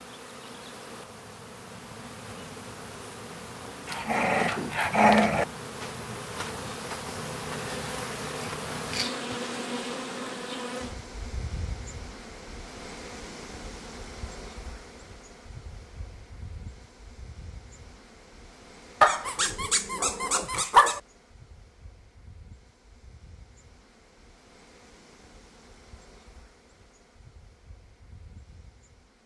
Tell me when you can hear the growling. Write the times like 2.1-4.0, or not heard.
3.9-5.5, 19.0-21.0.